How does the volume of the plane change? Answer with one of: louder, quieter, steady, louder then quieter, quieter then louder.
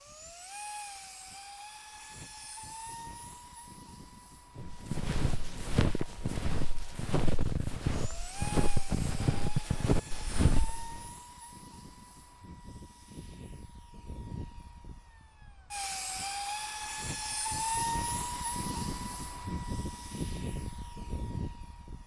louder.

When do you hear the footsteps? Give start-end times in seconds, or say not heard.
4.5-11.1.